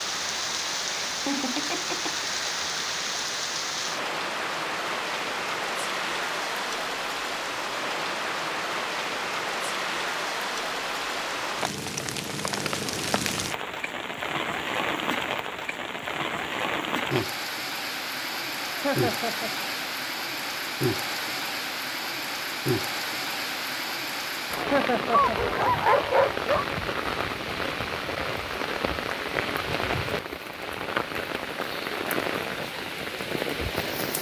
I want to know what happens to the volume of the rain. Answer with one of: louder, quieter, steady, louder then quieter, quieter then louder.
steady.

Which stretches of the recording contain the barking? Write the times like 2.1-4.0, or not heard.
25.1-26.6.